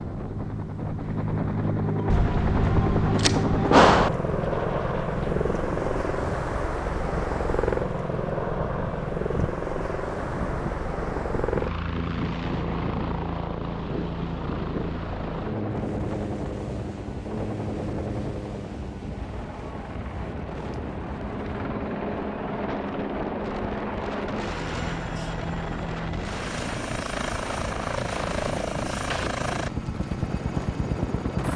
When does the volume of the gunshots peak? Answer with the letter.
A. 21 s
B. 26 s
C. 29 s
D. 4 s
D.